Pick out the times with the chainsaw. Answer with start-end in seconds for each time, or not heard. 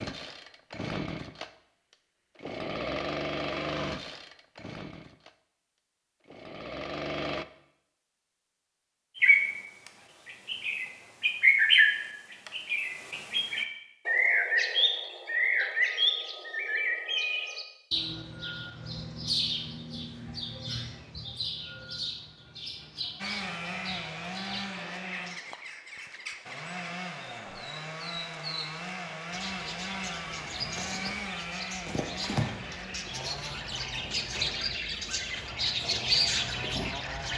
0.0-7.5, 23.1-37.3.